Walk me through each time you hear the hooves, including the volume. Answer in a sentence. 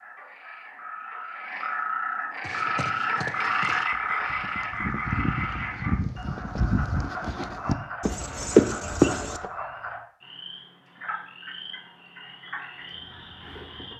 The hooves can be heard from 2.4 to 9.5 s, getting louder.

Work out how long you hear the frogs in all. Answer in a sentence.
You can hear the frogs for 14 seconds altogether.